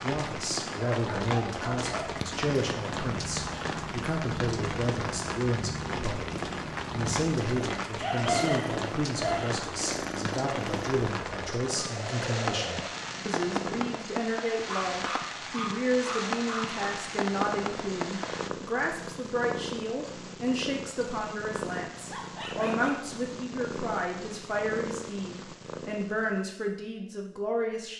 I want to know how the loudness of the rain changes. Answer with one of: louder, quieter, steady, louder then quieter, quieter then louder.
steady.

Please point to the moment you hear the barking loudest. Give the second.
8 s.